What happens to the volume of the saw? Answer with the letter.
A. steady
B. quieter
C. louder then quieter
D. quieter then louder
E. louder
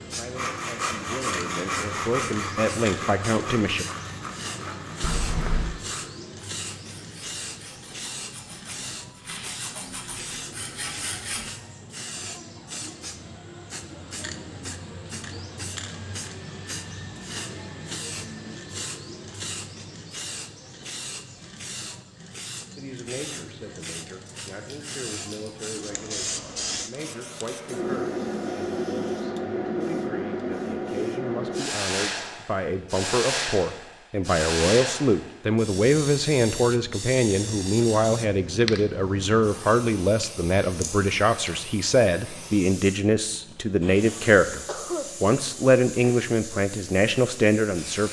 D.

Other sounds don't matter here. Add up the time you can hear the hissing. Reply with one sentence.
The hissing can be heard for 47 seconds in total.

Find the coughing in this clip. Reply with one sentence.
You can hear the coughing from 5.0 to 5.8 s and from 43.4 to 45.1 s.